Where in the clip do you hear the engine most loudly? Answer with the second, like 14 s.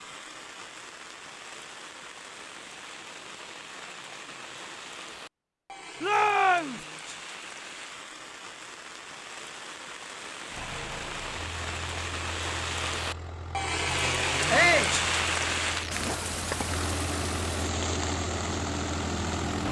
19 s.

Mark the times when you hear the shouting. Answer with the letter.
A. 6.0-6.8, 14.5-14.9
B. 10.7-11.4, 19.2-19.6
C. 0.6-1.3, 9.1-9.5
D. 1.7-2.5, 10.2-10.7
A.